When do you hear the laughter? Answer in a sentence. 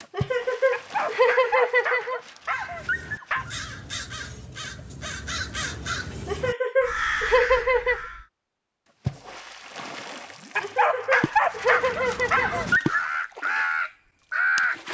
The laughter can be heard from 0.1 to 2.2 s, from 6.2 to 8.0 s and from 10.6 to 12.7 s.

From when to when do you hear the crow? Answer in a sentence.
The crow can be heard from 2.5 to 8.2 s and from 11.4 to 14.9 s.